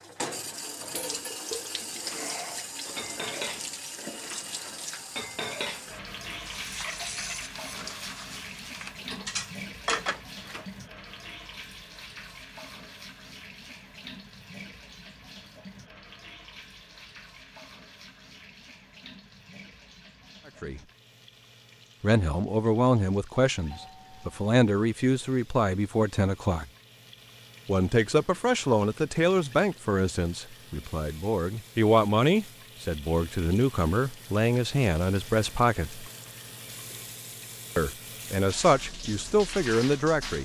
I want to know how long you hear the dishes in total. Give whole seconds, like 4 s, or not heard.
10 s.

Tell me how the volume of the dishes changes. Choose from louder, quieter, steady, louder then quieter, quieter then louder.
louder.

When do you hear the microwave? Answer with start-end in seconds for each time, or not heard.
not heard.